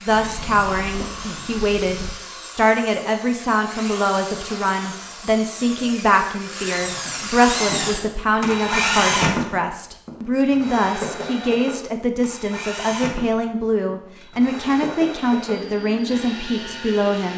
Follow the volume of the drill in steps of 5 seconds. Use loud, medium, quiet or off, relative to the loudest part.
medium, loud, medium, medium.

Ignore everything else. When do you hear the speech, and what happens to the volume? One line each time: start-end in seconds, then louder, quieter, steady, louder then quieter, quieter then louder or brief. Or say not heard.
0.0-17.3 steady.